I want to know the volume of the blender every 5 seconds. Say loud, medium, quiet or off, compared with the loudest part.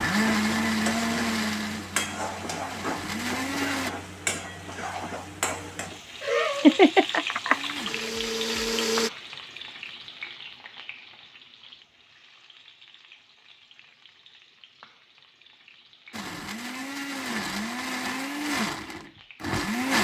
loud, loud, off, loud.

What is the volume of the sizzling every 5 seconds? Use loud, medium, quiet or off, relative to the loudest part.
loud, loud, quiet, quiet.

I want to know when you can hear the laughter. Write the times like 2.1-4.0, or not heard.
6.2-7.9.